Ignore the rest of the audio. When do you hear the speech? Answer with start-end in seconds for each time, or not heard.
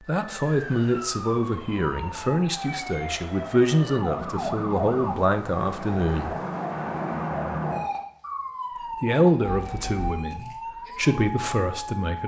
0.1-6.3, 9.0-12.2.